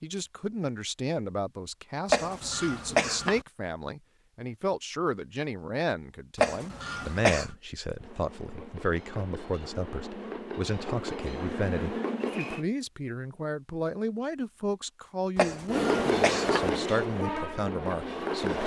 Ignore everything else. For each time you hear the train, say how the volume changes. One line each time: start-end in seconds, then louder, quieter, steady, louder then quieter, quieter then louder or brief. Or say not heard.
8.0-12.7 louder
15.7-18.6 brief.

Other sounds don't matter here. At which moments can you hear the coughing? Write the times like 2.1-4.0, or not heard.
2.1-3.4, 6.3-7.5, 15.3-16.7.